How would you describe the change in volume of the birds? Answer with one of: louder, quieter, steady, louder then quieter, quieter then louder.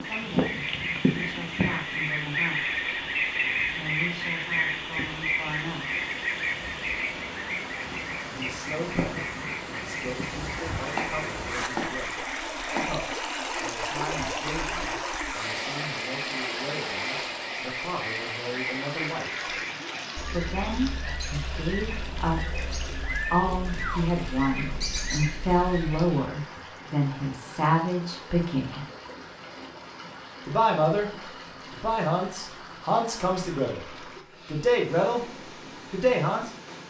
quieter.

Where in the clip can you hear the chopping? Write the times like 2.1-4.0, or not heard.
10.9-12.9.